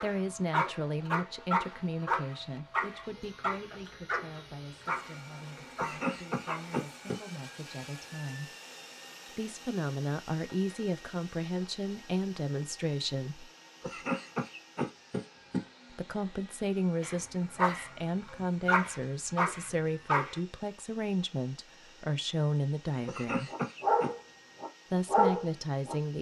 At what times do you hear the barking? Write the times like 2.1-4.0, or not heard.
0.0-6.8, 17.0-20.4, 23.5-25.9.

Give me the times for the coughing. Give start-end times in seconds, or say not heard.
5.8-7.2, 13.8-15.7, 23.1-24.1.